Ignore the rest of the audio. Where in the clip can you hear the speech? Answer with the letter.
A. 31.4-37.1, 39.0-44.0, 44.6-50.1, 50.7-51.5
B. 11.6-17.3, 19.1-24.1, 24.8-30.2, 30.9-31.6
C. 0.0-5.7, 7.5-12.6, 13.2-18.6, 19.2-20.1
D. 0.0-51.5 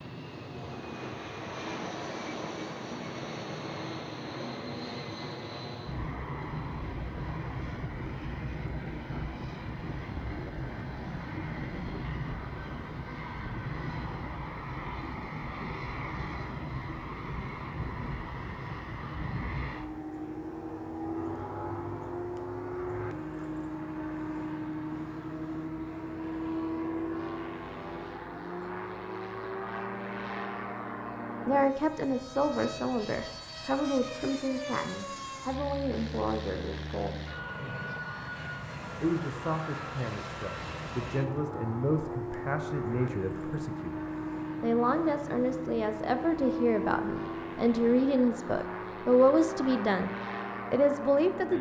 A.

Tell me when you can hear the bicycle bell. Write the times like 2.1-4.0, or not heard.
not heard.